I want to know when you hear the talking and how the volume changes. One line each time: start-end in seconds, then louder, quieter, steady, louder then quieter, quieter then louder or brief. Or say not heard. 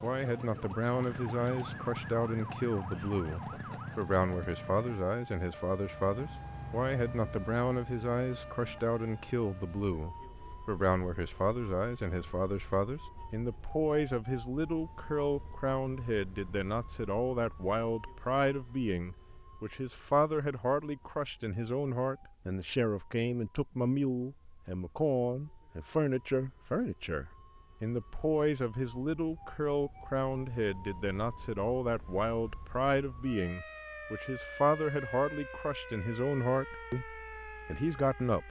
0.0-38.4 steady.